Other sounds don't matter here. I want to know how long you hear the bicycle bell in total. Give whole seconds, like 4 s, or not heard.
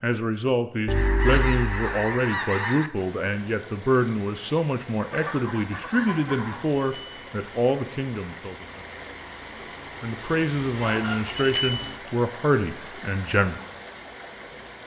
2 s.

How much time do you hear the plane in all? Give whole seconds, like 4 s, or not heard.
not heard.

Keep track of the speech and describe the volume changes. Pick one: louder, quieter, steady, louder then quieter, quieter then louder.
steady.